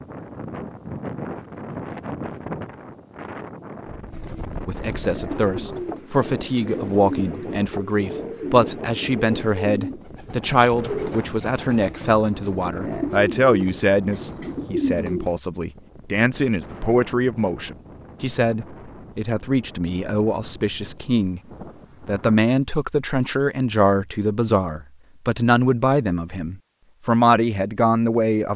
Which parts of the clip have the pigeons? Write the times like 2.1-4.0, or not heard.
4.1-15.4.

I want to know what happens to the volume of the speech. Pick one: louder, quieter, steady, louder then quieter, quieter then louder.
steady.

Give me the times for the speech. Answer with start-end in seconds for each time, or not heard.
4.7-21.4, 22.1-28.5.